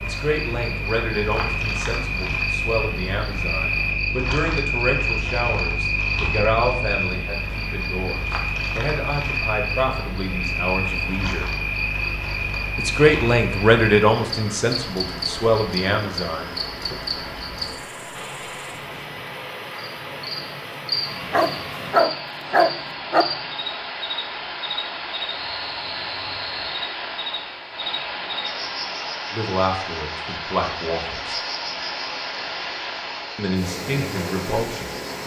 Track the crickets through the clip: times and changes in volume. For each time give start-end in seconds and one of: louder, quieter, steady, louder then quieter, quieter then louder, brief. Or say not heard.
0.0-35.2 quieter.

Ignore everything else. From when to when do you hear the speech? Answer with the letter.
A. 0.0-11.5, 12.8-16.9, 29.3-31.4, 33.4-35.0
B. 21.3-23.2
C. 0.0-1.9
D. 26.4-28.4
A.